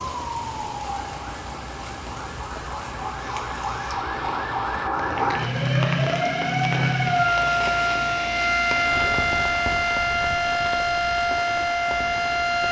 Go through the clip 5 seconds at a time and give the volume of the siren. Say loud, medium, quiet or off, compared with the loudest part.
medium, loud, loud.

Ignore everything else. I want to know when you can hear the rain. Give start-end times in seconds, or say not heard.
0.0-12.6.